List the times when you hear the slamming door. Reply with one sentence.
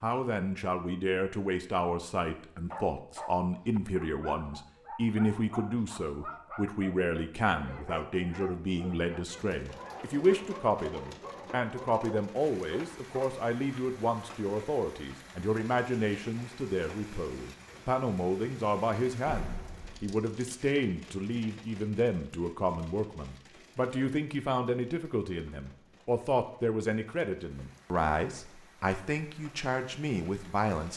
You can hear the slamming door from 19.2 to 20.1 s.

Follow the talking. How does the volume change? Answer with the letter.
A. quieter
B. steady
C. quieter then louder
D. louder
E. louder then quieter
B.